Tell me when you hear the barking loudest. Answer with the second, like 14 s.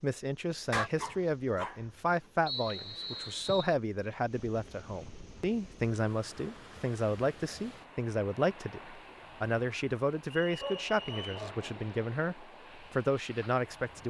1 s.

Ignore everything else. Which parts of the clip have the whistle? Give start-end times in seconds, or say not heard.
2.5-3.8, 10.3-11.3.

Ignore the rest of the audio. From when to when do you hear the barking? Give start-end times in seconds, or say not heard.
0.7-1.9, 10.6-11.8.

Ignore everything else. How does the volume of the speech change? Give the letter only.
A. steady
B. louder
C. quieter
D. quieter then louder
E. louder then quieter
A.